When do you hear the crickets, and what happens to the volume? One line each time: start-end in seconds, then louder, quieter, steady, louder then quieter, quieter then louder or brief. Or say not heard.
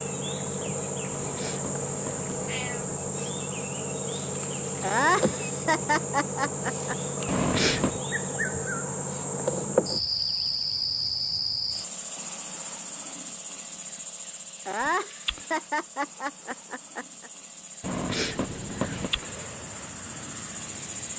0.0-21.1 quieter.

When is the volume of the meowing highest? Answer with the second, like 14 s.
8 s.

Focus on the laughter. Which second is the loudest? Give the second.
5 s.